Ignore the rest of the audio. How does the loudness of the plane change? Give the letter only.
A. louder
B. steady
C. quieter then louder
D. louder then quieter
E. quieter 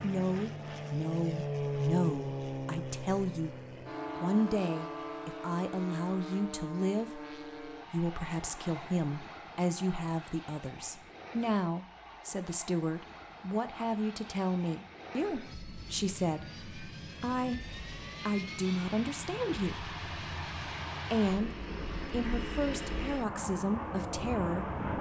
C.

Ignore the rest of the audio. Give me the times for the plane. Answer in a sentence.
The plane can be heard from 0.0 to 24.9 s.